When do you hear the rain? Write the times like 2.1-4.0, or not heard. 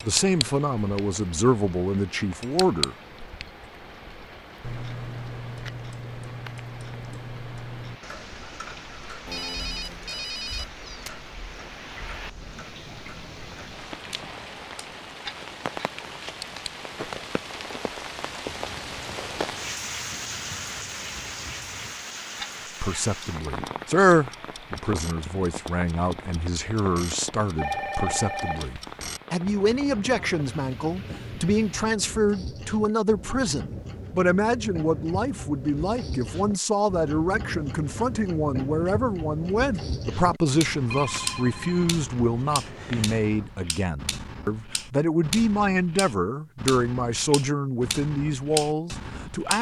0.0-31.9.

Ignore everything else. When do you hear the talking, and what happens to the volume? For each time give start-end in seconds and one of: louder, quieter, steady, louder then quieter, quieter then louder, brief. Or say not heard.
0.0-3.0 brief
22.8-49.5 steady.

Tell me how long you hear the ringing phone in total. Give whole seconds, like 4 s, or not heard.
6 s.